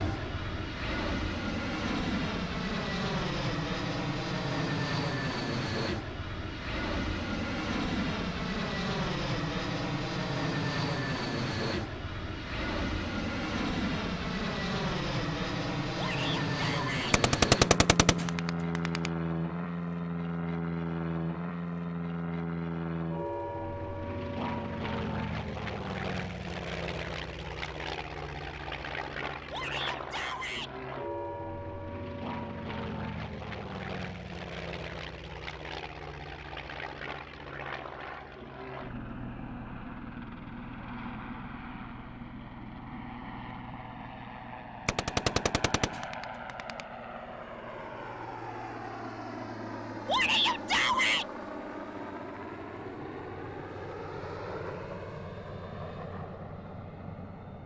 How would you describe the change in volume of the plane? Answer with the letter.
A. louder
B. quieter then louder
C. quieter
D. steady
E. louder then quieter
C.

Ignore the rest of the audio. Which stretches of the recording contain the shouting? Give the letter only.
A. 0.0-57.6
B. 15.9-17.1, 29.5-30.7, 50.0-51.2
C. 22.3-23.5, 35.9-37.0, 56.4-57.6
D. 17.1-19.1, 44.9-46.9
B.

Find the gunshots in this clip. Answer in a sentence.
You can hear the gunshots from 17.1 to 19.1 s and from 44.9 to 46.9 s.